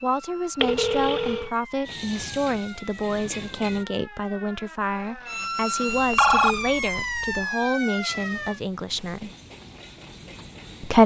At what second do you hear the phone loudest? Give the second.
6 s.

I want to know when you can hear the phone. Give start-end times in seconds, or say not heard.
0.6-1.5, 5.8-7.4.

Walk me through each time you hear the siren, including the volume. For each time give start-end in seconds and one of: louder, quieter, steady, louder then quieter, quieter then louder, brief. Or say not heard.
0.0-8.6 louder.